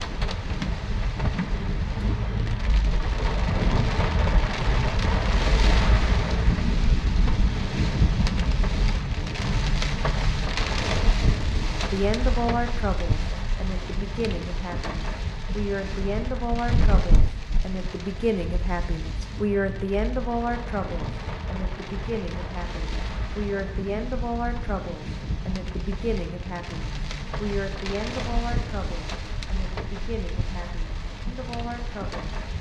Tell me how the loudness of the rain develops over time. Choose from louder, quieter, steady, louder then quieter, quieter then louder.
quieter.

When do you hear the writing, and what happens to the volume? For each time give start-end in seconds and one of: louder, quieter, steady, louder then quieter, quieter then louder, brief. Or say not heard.
not heard.